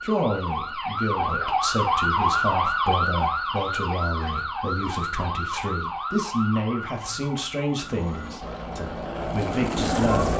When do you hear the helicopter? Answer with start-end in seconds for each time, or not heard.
7.8-10.3.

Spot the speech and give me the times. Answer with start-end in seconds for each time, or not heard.
0.0-10.3.